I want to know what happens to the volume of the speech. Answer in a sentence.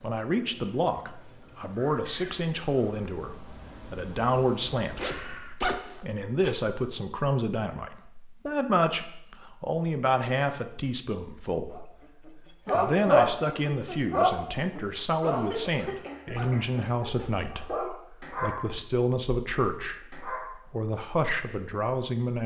The loudness of the speech stays about the same.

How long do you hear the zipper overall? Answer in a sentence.
You can hear the zipper for 3 seconds altogether.